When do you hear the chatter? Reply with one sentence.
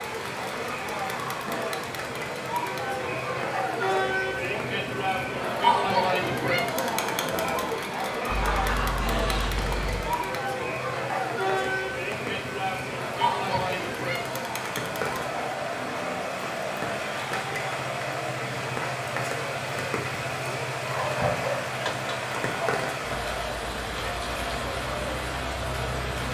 The chatter can be heard from 0.0 to 26.2 s.